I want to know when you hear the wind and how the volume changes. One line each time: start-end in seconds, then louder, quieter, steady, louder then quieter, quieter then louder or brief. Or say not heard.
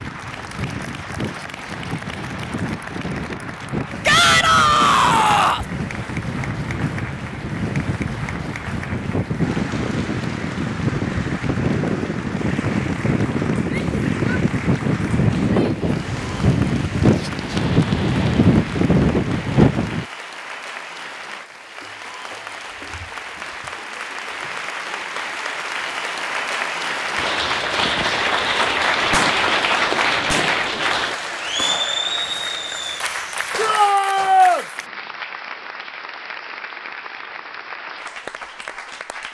0.0-20.1 louder.